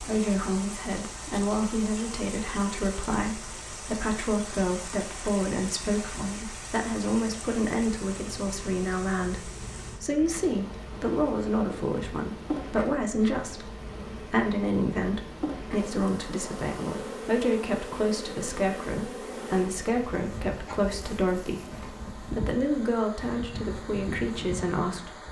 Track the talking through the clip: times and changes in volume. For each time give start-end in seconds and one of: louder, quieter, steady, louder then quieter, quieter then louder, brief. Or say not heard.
0.0-25.2 steady.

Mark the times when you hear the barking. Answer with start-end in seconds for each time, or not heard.
not heard.